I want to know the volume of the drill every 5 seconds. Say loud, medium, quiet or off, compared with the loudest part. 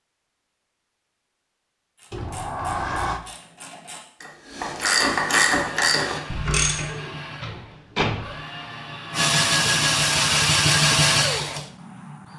off, medium, loud.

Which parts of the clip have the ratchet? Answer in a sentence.
The ratchet can be heard from 1.9 to 6.8 s.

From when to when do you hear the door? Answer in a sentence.
The door can be heard from 2.1 to 3.2 s and from 6.8 to 8.3 s.